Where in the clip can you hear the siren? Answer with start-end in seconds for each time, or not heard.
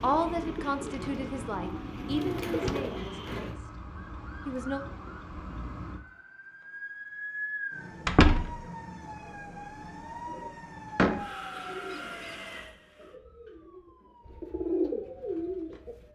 0.0-15.8.